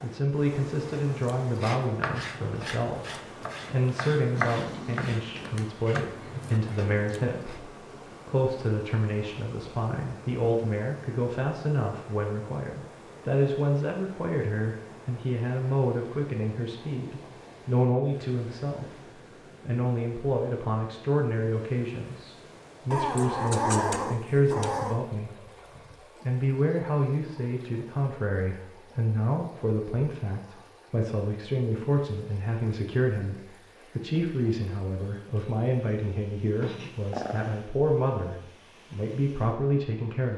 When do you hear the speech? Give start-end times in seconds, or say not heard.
0.0-25.4, 26.2-40.3.